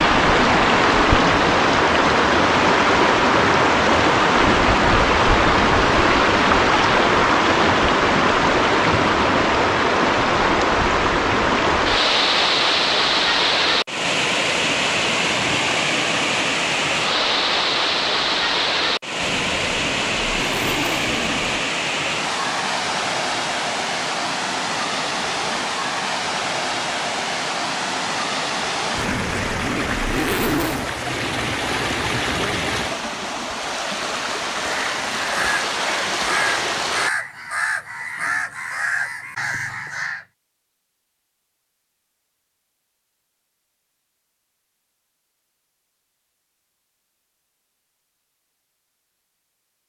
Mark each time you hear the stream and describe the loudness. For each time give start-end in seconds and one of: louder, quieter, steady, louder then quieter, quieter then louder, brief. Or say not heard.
0.0-37.1 quieter.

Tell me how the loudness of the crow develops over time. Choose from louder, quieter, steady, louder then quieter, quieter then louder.
steady.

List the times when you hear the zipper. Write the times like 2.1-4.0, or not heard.
19.2-21.6, 28.9-30.9.